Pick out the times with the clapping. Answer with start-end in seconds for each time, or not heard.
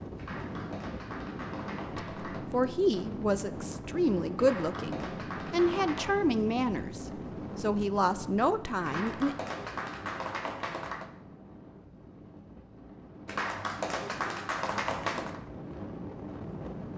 0.1-2.5, 4.3-6.2, 8.8-11.1, 13.2-15.4.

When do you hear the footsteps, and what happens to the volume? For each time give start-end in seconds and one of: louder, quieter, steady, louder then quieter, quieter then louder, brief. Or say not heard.
not heard.